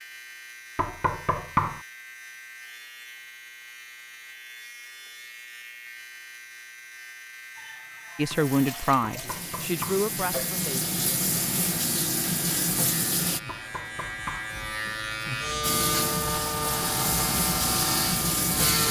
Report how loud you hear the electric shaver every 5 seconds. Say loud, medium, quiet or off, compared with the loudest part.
quiet, quiet, medium, loud.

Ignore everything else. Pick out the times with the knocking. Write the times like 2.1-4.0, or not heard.
0.8-1.8, 9.1-10.1, 13.4-14.5.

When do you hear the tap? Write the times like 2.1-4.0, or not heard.
7.5-13.4, 15.6-18.8.